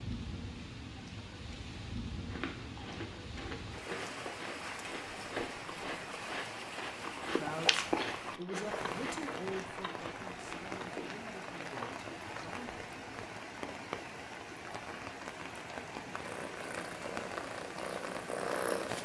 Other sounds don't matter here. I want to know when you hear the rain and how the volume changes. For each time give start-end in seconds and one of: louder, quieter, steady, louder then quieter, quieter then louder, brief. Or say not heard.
0.0-18.9 steady.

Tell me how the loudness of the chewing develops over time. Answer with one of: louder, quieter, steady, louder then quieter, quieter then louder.
louder then quieter.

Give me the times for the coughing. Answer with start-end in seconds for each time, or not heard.
not heard.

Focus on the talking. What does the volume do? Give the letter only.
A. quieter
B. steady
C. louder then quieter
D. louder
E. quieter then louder
A.